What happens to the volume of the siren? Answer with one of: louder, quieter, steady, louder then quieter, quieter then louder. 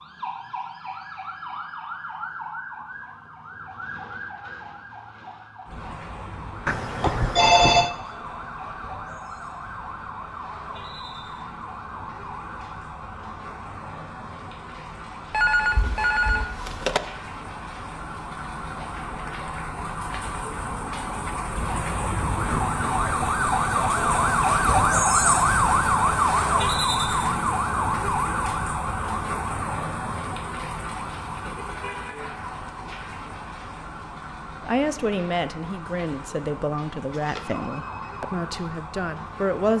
louder then quieter.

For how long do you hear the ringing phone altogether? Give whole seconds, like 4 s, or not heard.
4 s.